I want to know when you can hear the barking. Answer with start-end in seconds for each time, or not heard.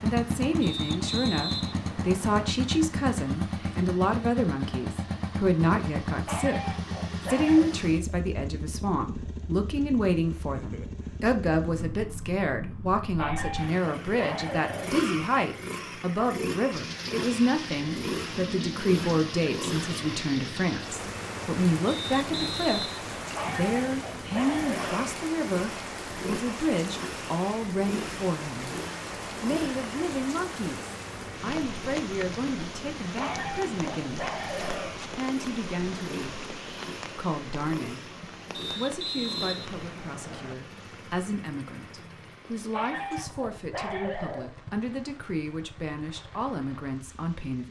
6.2-7.8, 13.2-14.9, 23.4-25.1, 33.1-35.0, 42.7-44.5.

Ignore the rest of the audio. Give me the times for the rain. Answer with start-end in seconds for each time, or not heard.
16.7-47.6.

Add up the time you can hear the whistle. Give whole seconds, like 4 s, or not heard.
5 s.